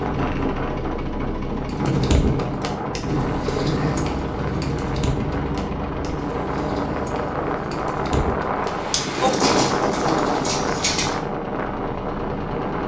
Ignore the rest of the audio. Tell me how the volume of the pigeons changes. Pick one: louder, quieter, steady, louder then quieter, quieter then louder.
quieter then louder.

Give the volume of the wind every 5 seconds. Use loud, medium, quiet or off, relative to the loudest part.
medium, loud, loud.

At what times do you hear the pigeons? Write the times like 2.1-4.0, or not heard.
1.6-11.2.